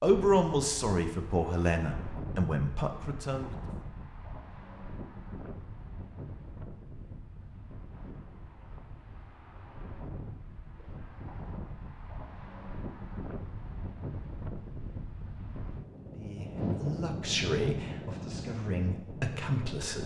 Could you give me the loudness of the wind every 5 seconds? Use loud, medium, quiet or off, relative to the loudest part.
medium, medium, medium, loud.